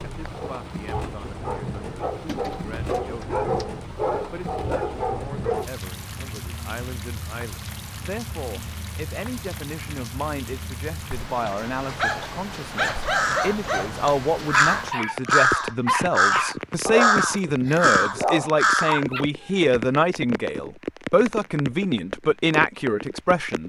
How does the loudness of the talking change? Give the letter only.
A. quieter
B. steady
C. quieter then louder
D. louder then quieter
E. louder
E.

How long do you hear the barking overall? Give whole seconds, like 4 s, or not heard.
13 s.